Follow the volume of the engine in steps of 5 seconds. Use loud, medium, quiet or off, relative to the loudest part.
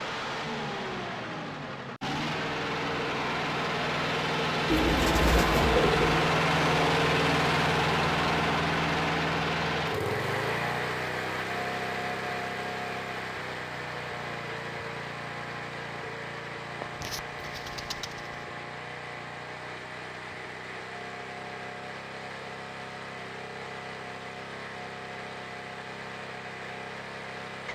medium, loud, medium, quiet, quiet, quiet.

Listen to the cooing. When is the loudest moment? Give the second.
6 s.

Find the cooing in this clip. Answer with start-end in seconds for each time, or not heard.
4.7-6.2, 16.8-18.4.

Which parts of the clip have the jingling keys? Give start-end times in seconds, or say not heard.
not heard.